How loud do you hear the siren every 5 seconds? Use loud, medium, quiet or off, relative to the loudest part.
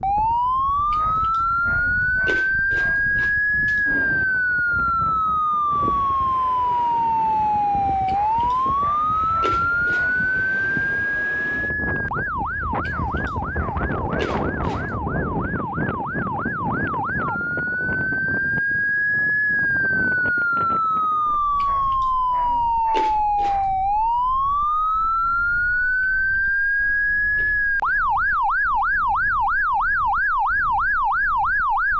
loud, loud, medium, loud, loud, loud, loud.